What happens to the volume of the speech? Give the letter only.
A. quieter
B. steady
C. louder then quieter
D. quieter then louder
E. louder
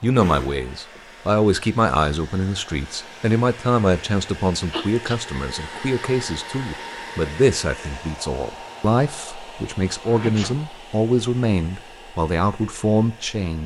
B.